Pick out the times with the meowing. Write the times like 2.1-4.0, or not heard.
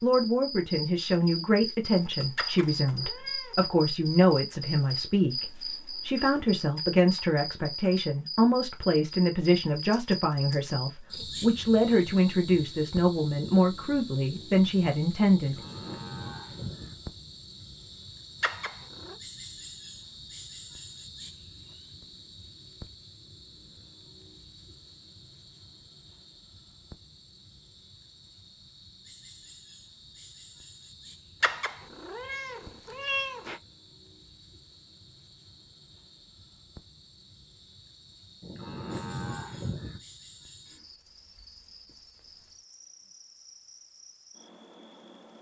2.4-3.5, 18.4-19.1, 31.4-33.6.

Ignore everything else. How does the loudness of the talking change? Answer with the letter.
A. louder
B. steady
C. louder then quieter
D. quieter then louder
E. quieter
B.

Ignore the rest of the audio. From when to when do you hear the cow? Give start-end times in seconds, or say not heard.
15.3-16.9, 38.4-40.0.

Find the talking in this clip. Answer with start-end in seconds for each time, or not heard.
0.0-15.6.